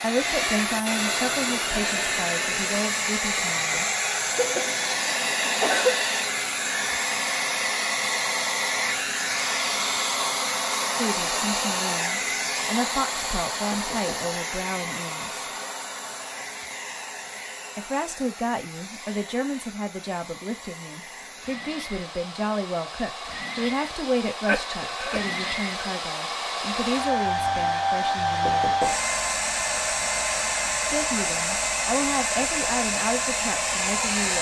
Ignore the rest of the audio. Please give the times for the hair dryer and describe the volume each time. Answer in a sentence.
You can hear the hair dryer from 0.0 to 34.3 s, getting quieter then louder.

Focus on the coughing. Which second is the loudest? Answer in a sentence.
The loudest moment of the coughing is at 6 seconds.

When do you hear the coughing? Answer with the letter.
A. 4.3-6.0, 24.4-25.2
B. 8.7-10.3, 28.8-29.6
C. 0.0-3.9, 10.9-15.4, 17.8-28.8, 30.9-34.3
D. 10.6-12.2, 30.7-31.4
A.